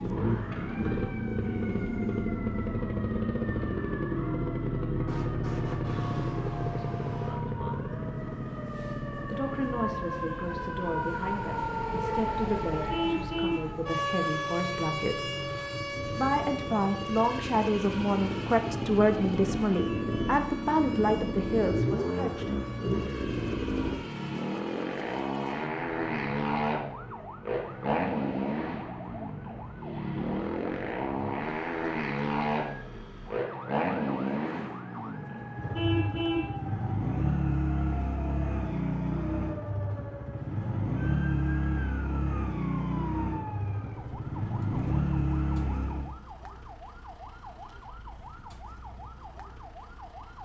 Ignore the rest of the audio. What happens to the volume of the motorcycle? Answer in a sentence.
The loudness of the motorcycle goes down, then up.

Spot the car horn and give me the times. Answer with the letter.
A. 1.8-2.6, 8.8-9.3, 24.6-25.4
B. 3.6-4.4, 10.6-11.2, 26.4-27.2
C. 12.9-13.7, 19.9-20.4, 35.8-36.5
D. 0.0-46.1
C.